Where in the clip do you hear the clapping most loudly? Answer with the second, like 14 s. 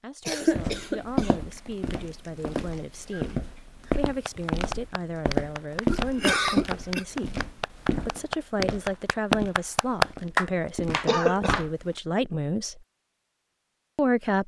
10 s.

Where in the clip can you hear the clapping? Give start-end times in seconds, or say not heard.
4.2-11.7.